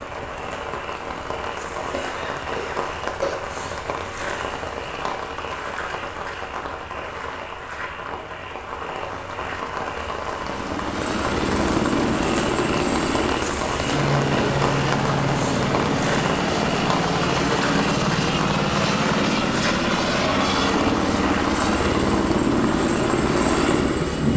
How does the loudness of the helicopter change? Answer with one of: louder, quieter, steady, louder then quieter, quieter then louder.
steady.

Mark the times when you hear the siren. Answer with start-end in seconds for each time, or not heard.
not heard.